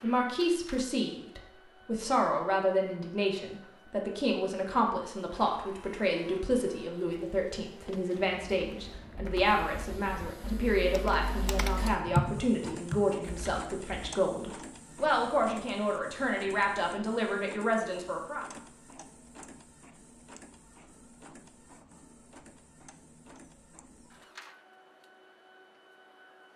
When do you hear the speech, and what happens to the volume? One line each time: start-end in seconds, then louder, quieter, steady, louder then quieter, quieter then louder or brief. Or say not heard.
0.0-18.4 steady.